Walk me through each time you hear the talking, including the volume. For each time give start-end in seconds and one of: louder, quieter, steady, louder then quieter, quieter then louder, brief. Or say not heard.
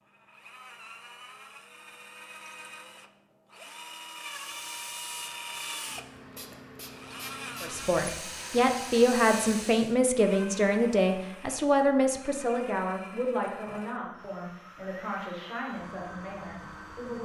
7.6-17.1 quieter.